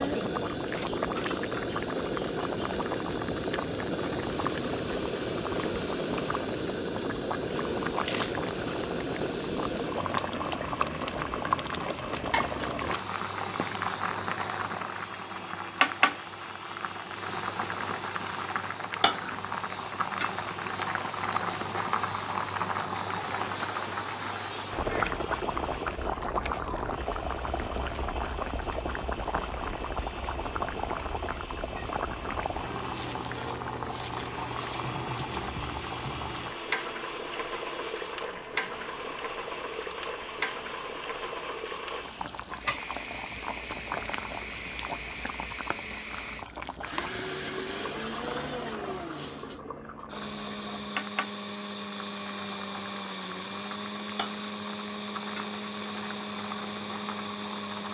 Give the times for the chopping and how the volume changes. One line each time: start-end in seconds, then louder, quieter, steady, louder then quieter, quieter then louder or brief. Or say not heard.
not heard.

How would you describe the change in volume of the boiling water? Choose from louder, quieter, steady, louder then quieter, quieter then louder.
quieter.